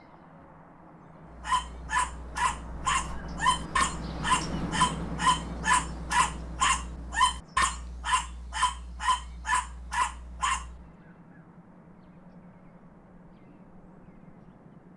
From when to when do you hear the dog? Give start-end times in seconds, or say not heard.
1.4-10.8.